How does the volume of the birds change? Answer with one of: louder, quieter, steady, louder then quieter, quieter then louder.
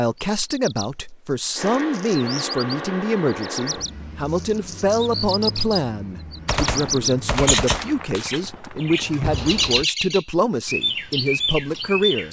louder.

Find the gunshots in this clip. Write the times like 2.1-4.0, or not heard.
6.5-9.8.